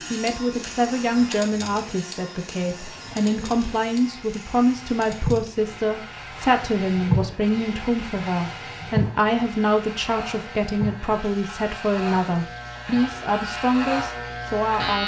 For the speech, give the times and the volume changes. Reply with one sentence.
The speech can be heard from 0.1 to 15.0 s, at a steady volume.